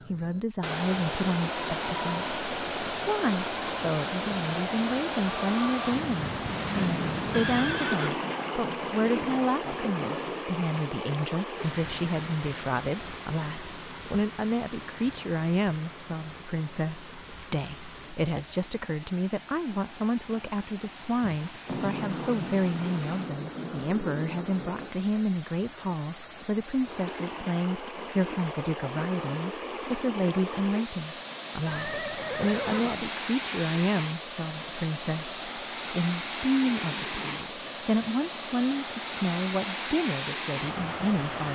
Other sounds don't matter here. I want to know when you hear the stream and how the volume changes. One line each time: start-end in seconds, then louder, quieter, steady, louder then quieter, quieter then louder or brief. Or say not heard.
0.0-41.4 quieter then louder.